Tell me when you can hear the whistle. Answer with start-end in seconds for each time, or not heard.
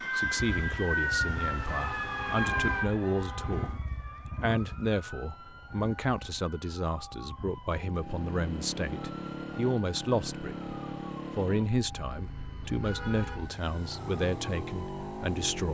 not heard.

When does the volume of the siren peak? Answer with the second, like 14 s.
1 s.